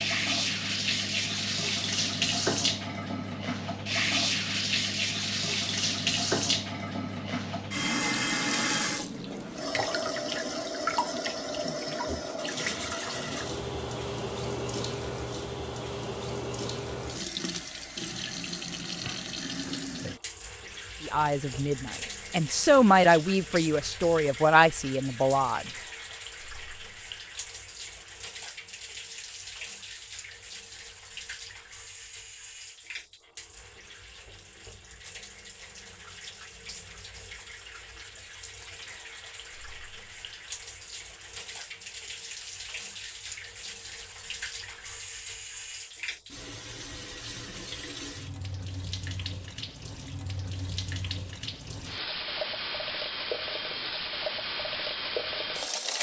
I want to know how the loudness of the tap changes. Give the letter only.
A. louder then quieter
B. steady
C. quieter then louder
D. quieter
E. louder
C.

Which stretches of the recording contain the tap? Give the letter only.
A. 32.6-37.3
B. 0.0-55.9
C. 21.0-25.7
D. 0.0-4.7
B.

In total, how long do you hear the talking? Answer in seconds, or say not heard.
5 s.